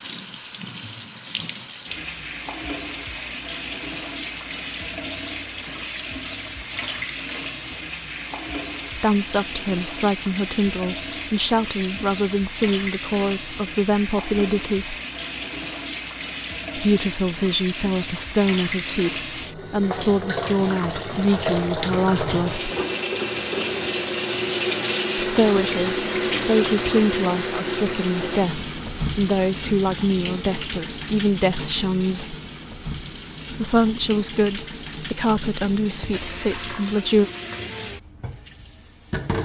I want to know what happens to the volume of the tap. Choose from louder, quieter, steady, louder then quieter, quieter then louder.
louder then quieter.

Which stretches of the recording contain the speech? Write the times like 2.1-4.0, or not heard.
8.9-14.9, 16.8-22.6, 25.1-32.4, 33.5-37.3.